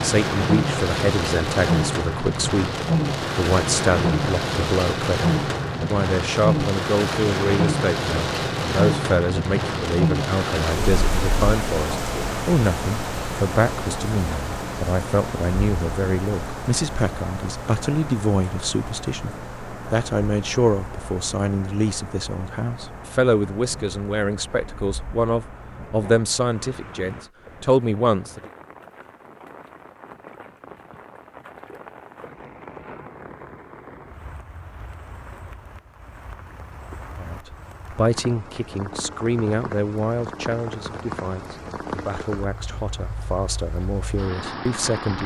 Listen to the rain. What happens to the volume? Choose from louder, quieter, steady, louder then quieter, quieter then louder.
quieter then louder.